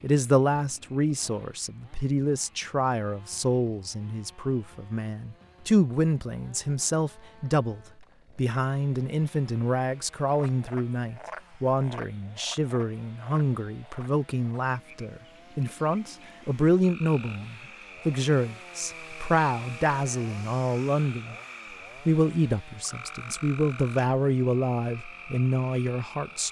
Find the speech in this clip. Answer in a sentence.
The speech can be heard from 0.0 to 21.4 s and from 22.1 to 26.4 s.